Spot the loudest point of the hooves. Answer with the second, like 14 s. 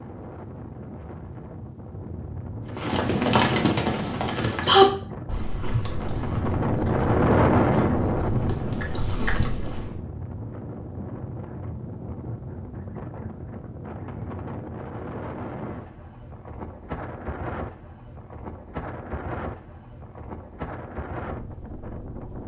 5 s.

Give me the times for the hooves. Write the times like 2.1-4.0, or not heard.
2.8-9.9.